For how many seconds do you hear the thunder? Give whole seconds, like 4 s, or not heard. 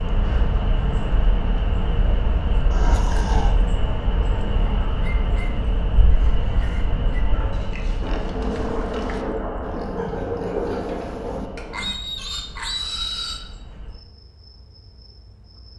4 s.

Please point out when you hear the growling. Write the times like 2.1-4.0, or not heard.
2.7-3.5.